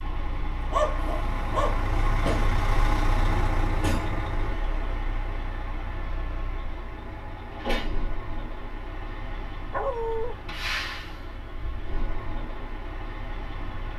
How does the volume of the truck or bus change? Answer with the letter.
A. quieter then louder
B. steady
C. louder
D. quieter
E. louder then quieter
D.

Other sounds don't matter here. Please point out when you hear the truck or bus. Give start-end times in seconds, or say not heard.
0.0-13.9.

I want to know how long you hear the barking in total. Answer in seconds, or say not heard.
2 s.